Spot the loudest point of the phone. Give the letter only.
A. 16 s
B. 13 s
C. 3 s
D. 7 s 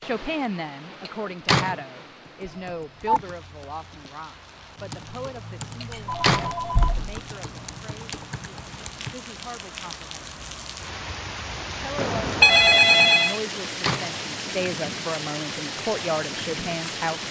B.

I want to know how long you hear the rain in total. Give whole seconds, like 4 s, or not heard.
17 s.